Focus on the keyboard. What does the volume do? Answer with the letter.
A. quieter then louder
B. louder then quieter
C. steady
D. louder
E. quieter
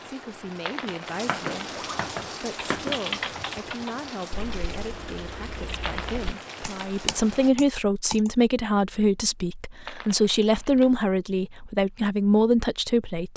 A.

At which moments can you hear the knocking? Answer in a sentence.
You can hear the knocking from 1.2 to 3.0 s.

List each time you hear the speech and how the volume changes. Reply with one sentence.
You can hear the speech from 0.1 to 13.3 s, getting louder.